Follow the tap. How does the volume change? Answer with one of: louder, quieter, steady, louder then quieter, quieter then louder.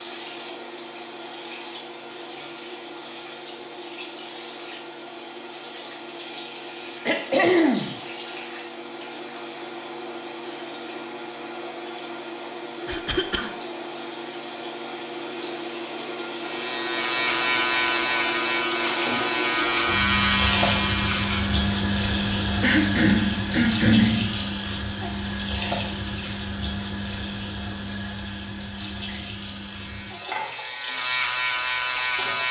louder then quieter.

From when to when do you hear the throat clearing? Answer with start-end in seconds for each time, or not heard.
7.0-8.0, 12.8-13.5, 22.6-24.4.